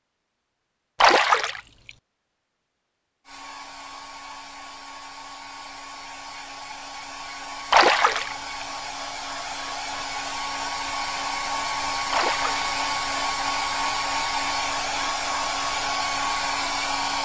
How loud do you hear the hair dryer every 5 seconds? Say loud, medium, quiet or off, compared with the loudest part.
quiet, medium, loud, loud.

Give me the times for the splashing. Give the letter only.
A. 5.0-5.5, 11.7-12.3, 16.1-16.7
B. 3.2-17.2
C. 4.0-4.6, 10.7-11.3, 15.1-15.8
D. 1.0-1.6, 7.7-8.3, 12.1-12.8
D.